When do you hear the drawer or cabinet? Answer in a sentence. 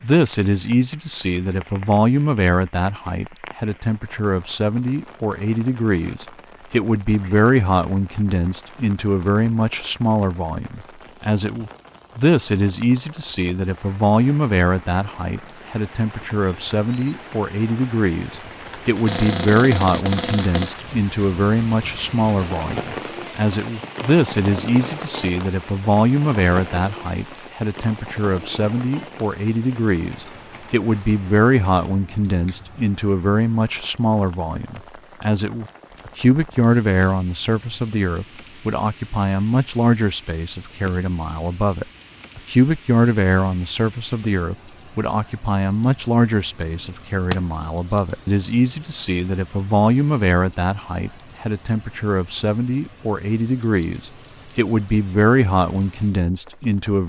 The drawer or cabinet can be heard from 19.1 to 20.8 s and from 46.8 to 47.5 s.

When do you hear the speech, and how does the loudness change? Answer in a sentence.
The speech can be heard from 0.0 to 57.0 s, at a steady volume.